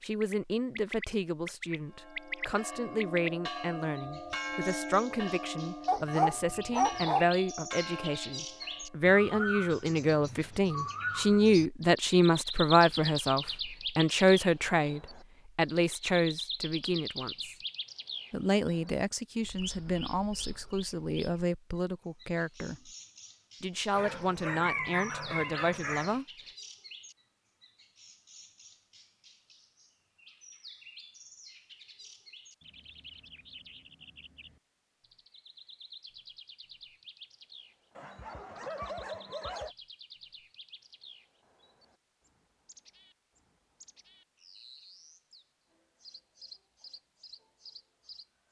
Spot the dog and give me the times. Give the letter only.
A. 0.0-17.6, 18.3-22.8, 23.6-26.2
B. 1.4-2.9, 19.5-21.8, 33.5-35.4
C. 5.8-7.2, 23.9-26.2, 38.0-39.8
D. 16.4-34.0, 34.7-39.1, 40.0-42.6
C.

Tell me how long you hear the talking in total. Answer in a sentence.
You can hear the talking for 25 seconds altogether.